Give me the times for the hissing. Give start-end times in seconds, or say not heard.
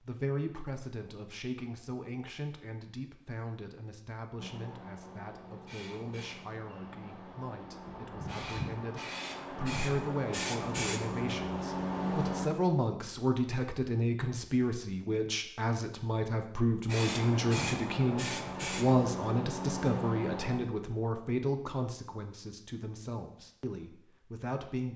4.3-12.5, 16.9-20.6.